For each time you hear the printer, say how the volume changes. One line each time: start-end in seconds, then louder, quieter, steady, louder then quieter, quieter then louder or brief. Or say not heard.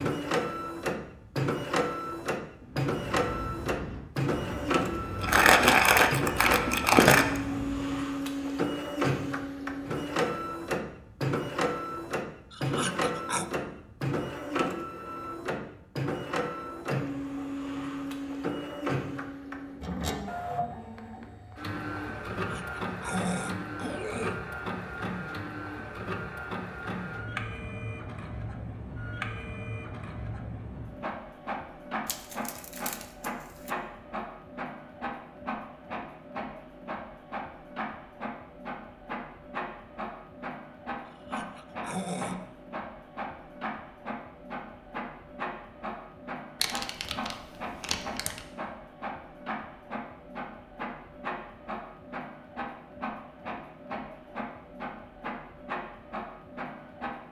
0.0-57.2 quieter.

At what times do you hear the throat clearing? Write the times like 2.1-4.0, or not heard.
12.5-13.4, 22.4-24.4, 41.0-42.5.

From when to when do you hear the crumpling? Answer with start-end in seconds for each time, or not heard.
5.2-7.4, 32.0-33.7, 46.6-48.4.